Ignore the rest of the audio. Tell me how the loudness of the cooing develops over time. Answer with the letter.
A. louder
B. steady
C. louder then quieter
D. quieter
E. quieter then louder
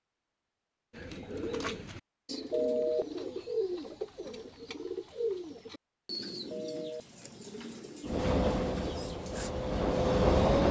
D.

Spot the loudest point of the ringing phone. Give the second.
3 s.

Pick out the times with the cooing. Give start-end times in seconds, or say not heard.
0.9-9.6.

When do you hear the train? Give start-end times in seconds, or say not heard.
8.1-10.6.